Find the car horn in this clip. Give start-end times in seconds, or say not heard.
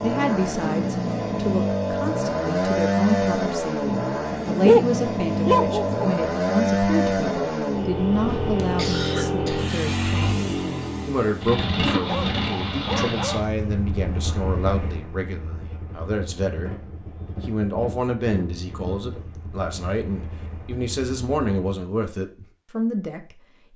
not heard.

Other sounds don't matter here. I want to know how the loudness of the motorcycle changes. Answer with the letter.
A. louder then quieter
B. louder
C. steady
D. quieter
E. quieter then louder
D.